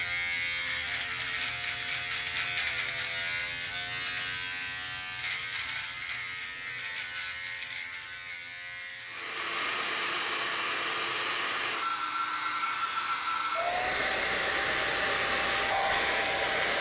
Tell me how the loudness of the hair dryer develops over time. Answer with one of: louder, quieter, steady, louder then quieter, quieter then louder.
steady.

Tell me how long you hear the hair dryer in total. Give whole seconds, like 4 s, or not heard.
8 s.